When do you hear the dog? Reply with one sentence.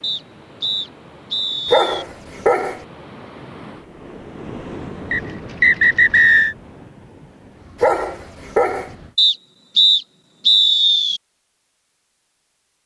The dog can be heard from 1.6 to 2.9 s and from 7.8 to 8.9 s.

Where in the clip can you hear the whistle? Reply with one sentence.
The whistle can be heard from 0.0 to 2.0 s, from 5.1 to 6.5 s and from 9.2 to 11.2 s.